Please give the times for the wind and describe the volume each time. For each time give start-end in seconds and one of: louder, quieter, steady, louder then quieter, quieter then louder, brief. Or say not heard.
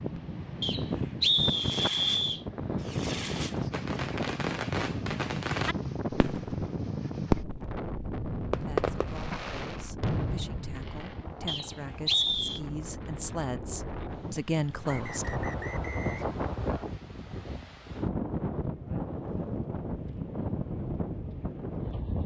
0.0-22.2 quieter then louder.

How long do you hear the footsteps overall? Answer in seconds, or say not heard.
not heard.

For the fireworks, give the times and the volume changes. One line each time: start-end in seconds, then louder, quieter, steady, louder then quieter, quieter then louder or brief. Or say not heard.
1.4-7.5 louder then quieter
8.5-11.2 brief.